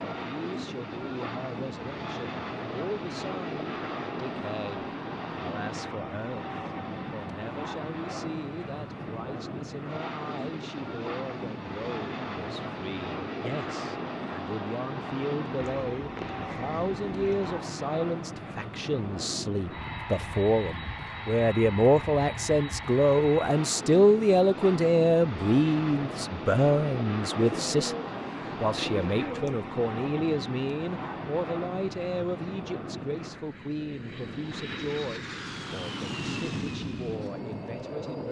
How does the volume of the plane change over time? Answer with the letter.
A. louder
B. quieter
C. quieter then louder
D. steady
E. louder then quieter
D.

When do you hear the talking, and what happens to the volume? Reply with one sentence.
The talking can be heard from 0.1 to 27.9 s, getting louder; and from 28.6 to 38.2 s, getting quieter.